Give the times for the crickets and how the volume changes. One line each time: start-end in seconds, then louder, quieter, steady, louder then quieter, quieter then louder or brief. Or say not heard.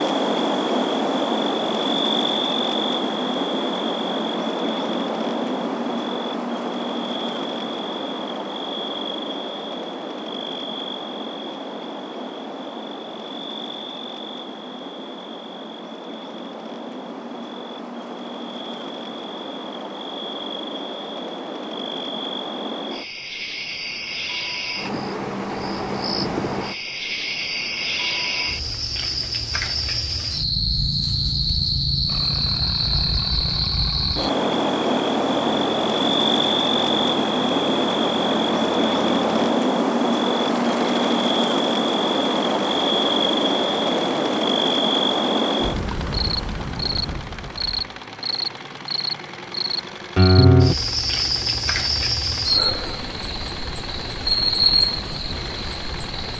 0.0-56.3 quieter then louder.